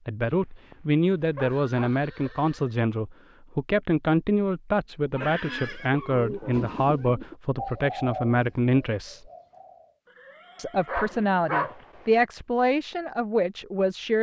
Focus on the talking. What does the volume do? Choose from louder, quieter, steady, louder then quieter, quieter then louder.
steady.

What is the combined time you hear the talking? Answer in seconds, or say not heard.
13 s.